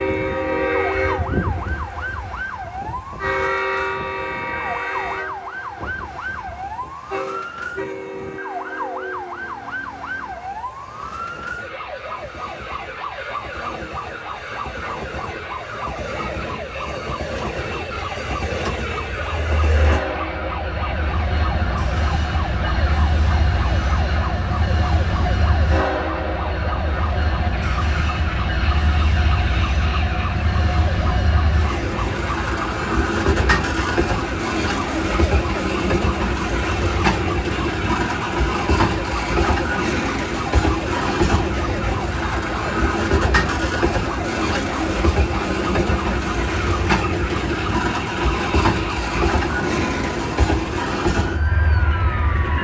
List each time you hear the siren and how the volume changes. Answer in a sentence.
The siren can be heard from 0.0 to 52.5 s, at a steady volume.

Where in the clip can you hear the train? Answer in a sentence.
The train can be heard from 0.0 to 52.5 s.